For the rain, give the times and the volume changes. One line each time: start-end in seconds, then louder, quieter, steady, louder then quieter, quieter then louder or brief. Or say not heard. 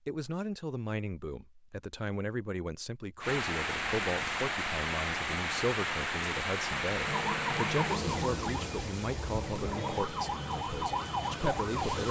3.2-12.0 quieter.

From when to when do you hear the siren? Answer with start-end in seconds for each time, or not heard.
7.0-12.0.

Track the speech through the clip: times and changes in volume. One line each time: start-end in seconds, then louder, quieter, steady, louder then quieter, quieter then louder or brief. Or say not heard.
0.1-12.0 steady.